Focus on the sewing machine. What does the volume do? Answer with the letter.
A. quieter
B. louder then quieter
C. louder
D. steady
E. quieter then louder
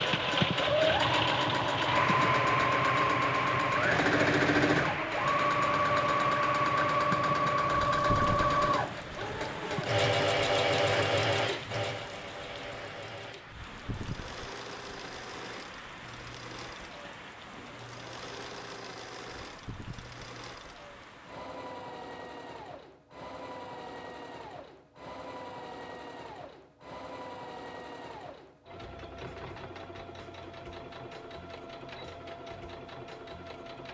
A.